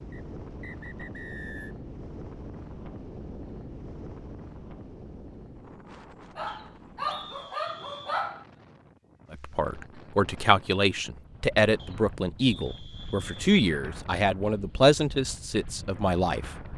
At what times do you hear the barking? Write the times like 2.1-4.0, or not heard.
6.3-8.4.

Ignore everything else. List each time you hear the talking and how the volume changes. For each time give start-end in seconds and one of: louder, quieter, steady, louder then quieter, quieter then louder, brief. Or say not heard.
9.3-16.5 steady.